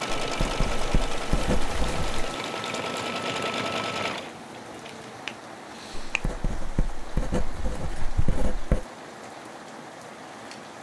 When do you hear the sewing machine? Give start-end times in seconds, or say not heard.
0.0-5.2.